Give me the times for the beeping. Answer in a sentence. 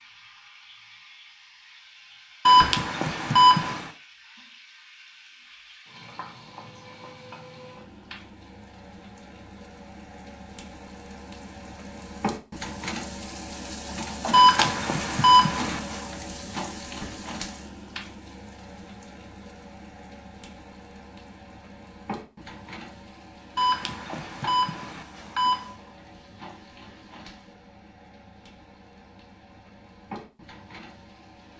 The beeping can be heard from 2.5 to 3.9 s, from 14.3 to 16.0 s and from 23.6 to 25.8 s.